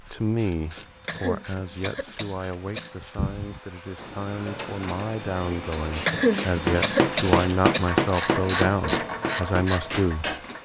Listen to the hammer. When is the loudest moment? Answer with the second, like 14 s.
8 s.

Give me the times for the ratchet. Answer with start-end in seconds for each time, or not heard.
0.1-10.5.